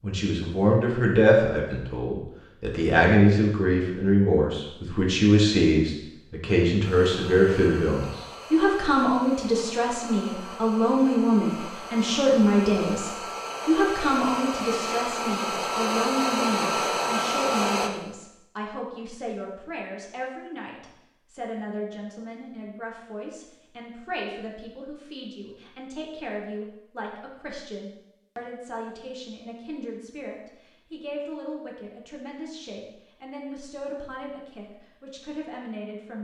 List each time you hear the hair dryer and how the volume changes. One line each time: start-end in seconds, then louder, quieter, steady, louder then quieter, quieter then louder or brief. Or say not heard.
6.8-17.9 louder.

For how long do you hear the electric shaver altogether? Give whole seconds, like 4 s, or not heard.
not heard.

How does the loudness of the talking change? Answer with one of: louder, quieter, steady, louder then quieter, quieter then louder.
quieter.